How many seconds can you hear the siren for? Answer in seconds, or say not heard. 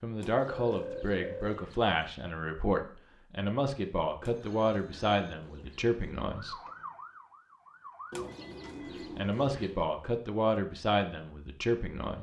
2 s.